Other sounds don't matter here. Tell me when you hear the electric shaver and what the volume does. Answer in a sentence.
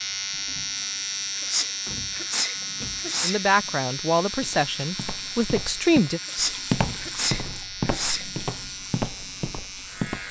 You can hear the electric shaver from 0.0 to 10.2 s, getting quieter.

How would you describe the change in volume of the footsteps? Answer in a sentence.
The volume of the footsteps goes up, then down.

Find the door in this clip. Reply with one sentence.
You can hear the door from 1.9 to 3.1 s and from 6.8 to 7.2 s.